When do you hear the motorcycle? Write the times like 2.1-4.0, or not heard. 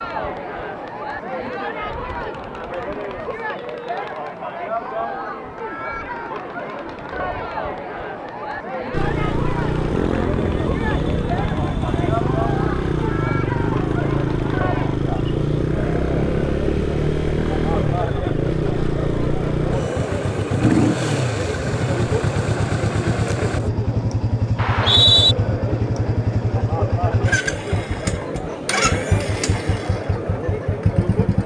8.9-31.4.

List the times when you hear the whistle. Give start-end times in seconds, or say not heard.
24.6-25.4.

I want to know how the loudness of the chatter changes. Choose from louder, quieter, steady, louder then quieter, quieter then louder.
steady.